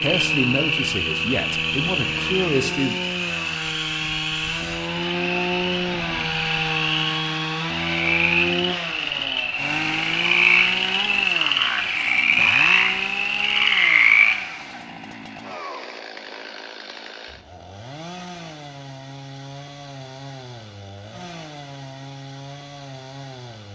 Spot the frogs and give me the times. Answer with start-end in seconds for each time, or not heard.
0.0-14.4.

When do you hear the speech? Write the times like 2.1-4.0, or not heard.
0.0-3.0.